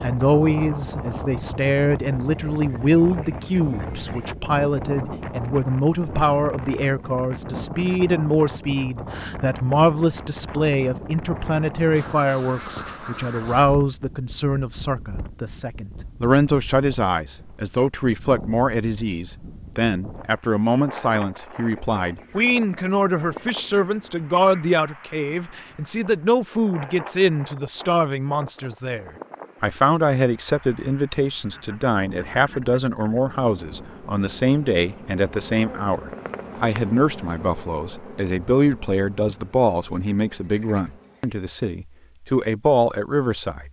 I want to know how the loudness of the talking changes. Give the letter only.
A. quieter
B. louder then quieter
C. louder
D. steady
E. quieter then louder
D.